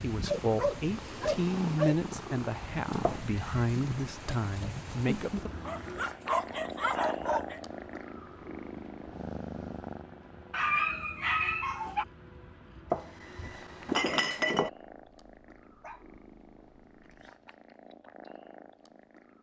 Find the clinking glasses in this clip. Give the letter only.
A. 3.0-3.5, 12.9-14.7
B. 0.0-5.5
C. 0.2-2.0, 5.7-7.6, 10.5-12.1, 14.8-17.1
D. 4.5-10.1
A.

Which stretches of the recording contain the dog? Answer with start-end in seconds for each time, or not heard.
0.2-2.0, 5.7-7.6, 10.5-12.1, 14.8-17.1.